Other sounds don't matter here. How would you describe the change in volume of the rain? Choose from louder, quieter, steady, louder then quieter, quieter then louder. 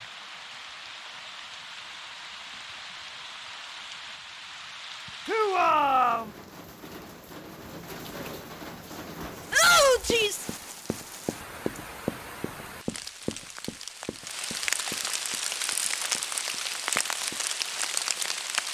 louder.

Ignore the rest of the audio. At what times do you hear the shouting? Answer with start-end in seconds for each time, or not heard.
5.2-6.3, 9.5-10.4.